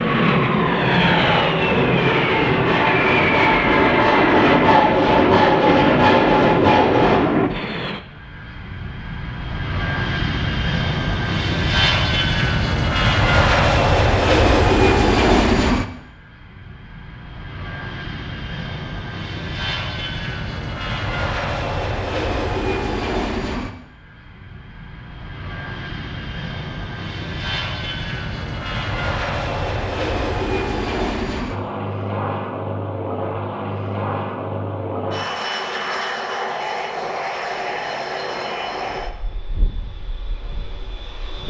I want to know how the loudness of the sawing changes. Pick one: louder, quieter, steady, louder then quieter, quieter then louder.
louder.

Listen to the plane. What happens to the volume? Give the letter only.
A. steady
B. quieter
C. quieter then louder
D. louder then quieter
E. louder
B.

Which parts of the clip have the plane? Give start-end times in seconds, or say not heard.
0.0-41.4.